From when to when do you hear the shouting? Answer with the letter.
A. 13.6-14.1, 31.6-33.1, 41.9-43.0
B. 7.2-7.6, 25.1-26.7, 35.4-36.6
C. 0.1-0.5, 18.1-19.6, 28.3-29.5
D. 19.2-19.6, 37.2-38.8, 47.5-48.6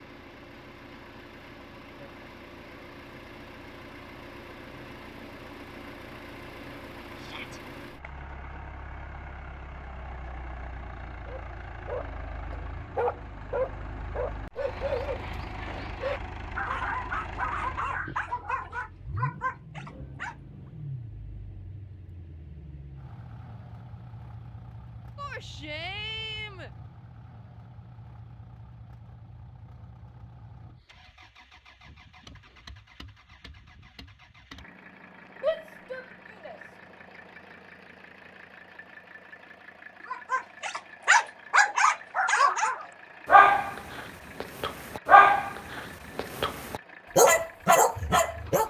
B.